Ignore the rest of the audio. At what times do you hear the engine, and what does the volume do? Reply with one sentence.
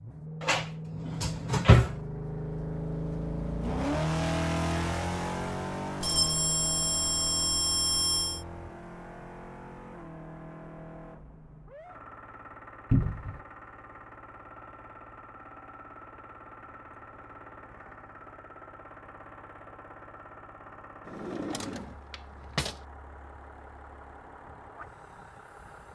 You can hear the engine from 0.0 to 25.8 s, getting quieter.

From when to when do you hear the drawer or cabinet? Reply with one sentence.
The drawer or cabinet can be heard from 0.4 to 1.9 s, from 12.9 to 13.4 s and from 21.1 to 22.8 s.